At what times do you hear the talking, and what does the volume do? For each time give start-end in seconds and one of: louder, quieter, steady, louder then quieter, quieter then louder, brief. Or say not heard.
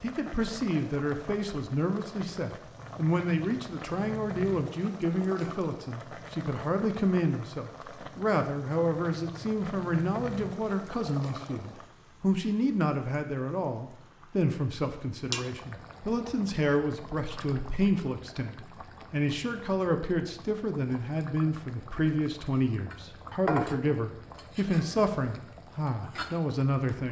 0.0-27.0 steady.